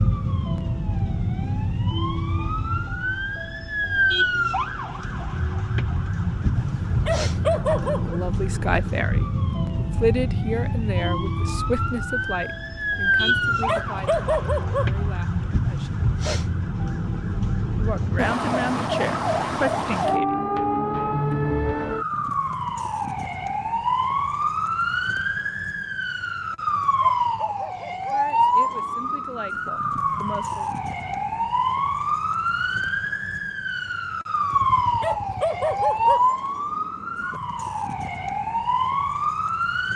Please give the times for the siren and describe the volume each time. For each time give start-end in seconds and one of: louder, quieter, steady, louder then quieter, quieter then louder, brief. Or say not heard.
0.0-39.9 steady.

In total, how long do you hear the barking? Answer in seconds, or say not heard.
7 s.